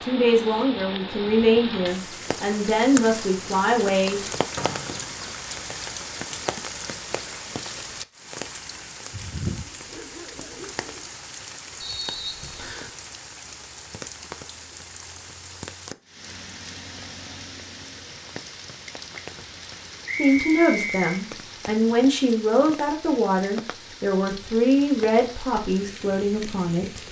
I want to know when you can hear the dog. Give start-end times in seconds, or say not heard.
9.6-11.1.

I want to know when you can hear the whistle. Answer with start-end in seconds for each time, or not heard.
4.5-5.2, 11.8-12.9, 20.1-21.1.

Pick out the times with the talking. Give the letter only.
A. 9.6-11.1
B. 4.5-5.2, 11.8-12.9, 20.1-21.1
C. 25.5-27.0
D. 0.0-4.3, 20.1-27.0
D.